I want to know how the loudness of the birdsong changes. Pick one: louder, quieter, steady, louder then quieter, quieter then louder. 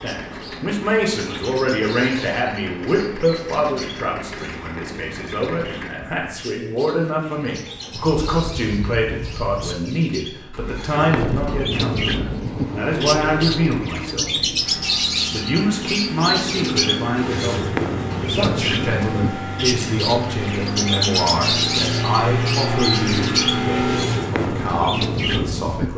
louder.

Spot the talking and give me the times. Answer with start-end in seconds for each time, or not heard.
0.0-14.6, 15.3-25.9.